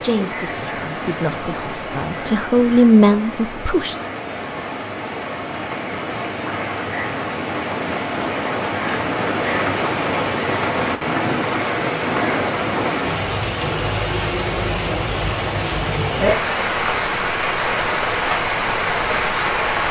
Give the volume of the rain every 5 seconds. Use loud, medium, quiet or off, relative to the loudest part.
medium, loud, loud, loud.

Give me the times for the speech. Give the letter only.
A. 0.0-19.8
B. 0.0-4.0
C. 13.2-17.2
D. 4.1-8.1
B.